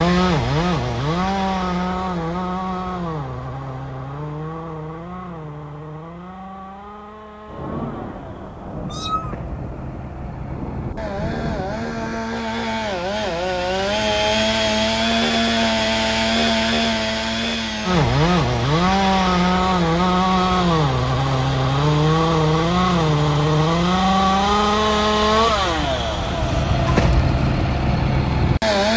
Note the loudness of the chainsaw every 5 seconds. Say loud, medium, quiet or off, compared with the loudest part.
medium, quiet, medium, loud, loud, loud.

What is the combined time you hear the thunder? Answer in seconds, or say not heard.
5 s.